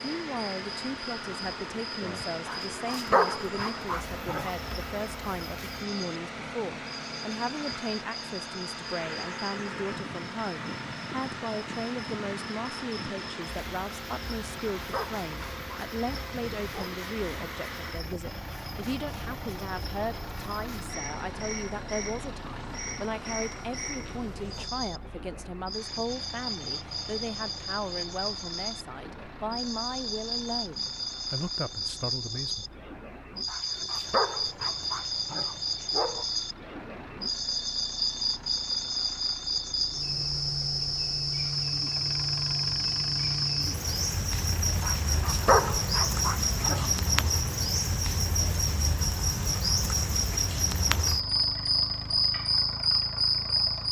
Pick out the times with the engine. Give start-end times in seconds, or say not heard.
0.0-53.8.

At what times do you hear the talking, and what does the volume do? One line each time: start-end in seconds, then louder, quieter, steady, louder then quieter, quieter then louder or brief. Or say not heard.
0.0-32.6 steady.